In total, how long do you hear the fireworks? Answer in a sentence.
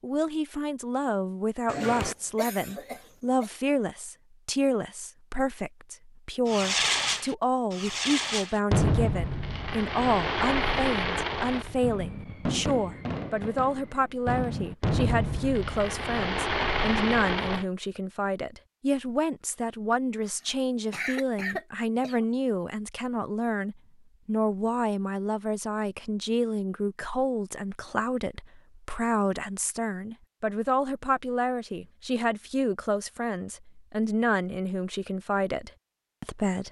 The fireworks can be heard for 11 seconds in total.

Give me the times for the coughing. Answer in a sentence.
The coughing can be heard from 1.6 to 3.5 s and from 20.2 to 22.2 s.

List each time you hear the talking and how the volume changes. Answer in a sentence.
The talking can be heard from 0.0 to 36.6 s, at a steady volume.